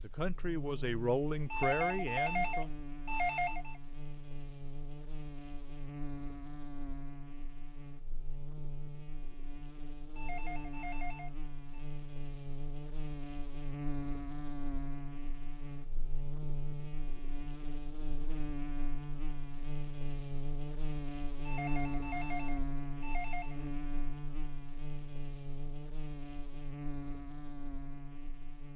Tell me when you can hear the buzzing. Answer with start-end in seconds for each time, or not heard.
0.0-28.7.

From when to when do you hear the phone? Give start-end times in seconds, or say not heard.
1.5-3.8, 10.2-11.8, 21.4-23.6.